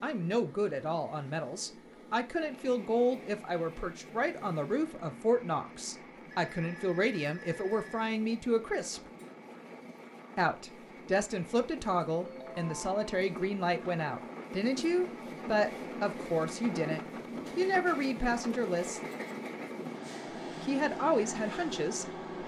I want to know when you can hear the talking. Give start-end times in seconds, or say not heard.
0.0-9.0, 10.3-19.0, 20.6-22.4.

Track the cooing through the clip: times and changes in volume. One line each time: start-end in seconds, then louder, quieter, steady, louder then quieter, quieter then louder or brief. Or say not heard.
not heard.